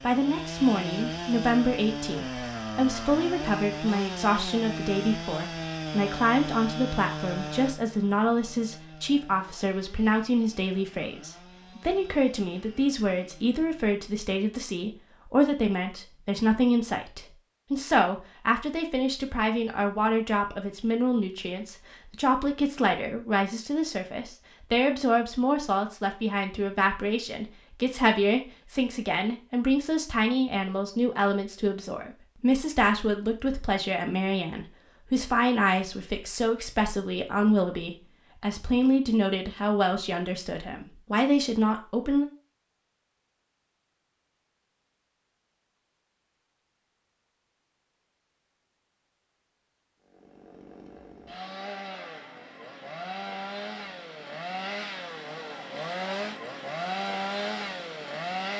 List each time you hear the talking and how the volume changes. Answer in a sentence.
You can hear the talking from 0.0 to 42.3 s, at a steady volume.